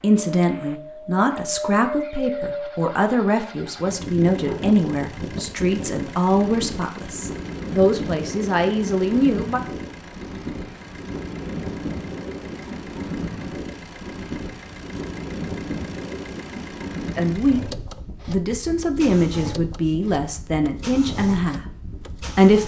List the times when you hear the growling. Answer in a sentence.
The growling can't be heard in this clip.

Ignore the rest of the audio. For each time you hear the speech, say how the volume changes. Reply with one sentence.
The speech can be heard from 0.0 to 9.6 s, at a steady volume; and from 17.1 to 22.6 s, at a steady volume.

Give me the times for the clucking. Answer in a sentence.
You can't hear the clucking here.